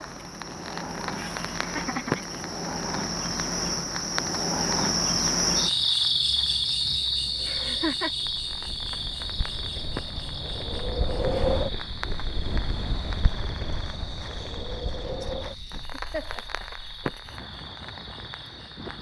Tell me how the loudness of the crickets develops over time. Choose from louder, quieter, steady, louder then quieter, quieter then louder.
louder then quieter.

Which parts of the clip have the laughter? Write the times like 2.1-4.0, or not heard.
1.1-2.2, 7.5-8.1, 15.7-16.6.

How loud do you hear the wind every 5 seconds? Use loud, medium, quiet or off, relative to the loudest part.
off, quiet, loud, medium.